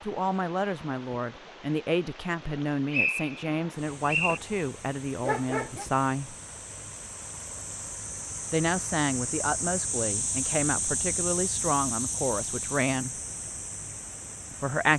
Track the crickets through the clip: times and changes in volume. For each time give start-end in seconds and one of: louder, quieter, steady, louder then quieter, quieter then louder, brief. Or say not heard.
3.8-14.9 louder then quieter.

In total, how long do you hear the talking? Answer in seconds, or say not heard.
11 s.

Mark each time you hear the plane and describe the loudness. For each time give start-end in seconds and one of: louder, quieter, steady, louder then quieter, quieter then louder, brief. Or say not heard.
not heard.